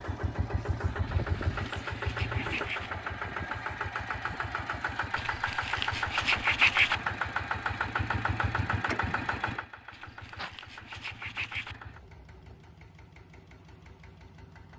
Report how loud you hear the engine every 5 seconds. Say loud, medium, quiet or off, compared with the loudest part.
loud, loud, quiet.